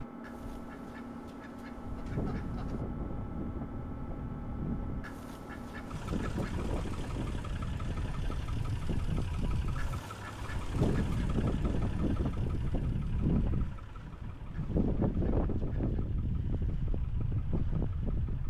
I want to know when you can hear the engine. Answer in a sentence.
The engine can be heard from 0.0 to 18.4 s.